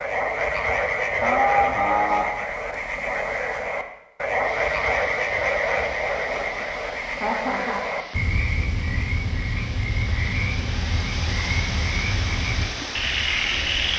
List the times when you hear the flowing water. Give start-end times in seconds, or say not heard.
4.4-13.9.